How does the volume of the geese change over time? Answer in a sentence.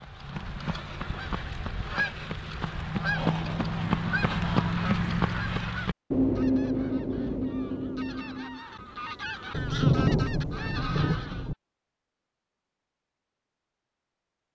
The volume of the geese goes up, then down.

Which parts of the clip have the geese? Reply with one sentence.
You can hear the geese from 0.0 to 11.5 s.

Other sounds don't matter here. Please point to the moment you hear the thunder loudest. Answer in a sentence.
The loudest moment of the thunder is at 10 seconds.